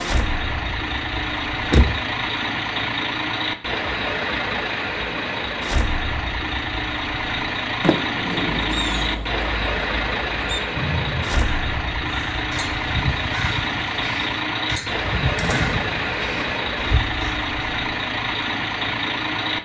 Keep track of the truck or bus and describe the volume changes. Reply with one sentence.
The loudness of the truck or bus stays about the same.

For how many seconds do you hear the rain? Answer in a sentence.
The rain can't be heard in this clip.